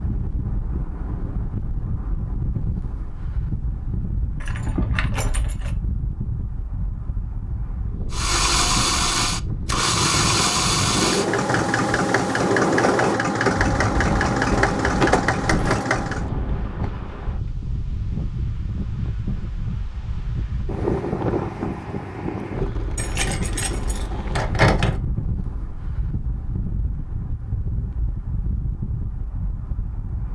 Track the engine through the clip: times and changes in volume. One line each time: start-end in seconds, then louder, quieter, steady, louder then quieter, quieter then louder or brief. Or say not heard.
8.1-16.3 steady.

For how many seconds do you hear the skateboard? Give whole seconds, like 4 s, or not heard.
not heard.